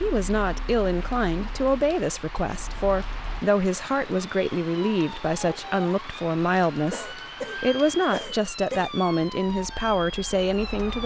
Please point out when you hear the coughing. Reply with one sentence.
You can hear the coughing from 6.9 to 9.3 s.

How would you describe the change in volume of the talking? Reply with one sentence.
The loudness of the talking stays about the same.